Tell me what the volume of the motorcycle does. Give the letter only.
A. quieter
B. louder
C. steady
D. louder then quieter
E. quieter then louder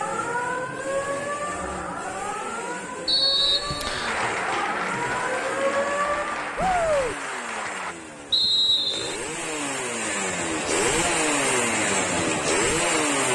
B.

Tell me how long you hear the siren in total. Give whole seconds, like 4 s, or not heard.
7 s.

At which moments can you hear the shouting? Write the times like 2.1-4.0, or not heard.
6.5-7.2.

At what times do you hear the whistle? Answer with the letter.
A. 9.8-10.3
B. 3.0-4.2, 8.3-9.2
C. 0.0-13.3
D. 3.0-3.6
B.